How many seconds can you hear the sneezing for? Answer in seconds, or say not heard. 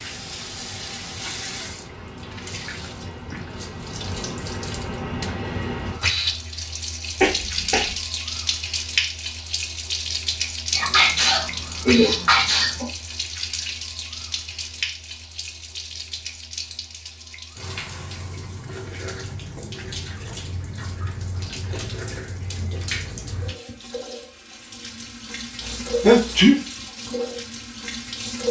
4 s.